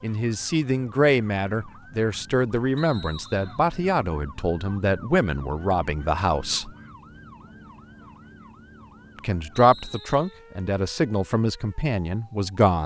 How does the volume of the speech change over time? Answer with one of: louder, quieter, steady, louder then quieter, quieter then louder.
steady.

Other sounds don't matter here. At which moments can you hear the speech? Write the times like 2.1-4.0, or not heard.
0.0-6.7, 9.2-12.8.